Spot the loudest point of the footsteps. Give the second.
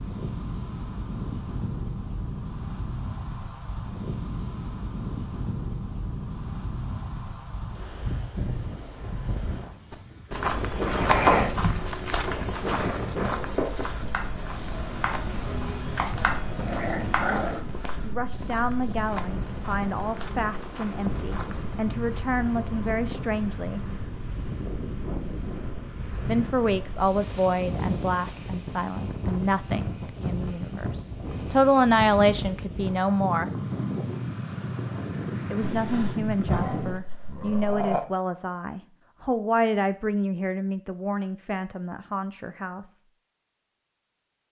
11 s.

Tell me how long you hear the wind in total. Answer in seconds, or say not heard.
37 s.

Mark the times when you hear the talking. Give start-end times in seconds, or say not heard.
18.0-23.8, 26.2-33.5, 35.5-43.0.